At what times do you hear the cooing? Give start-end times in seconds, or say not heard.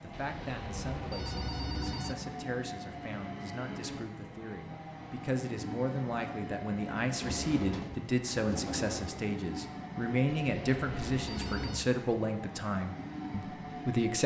7.2-9.2.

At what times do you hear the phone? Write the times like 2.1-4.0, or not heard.
0.1-2.1, 10.3-11.9.